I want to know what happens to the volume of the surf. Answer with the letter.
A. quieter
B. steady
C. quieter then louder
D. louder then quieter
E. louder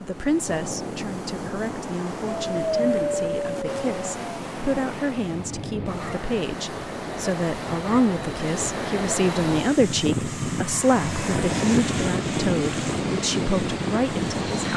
E.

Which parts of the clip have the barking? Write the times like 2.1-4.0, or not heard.
2.2-4.3.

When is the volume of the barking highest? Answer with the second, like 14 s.
3 s.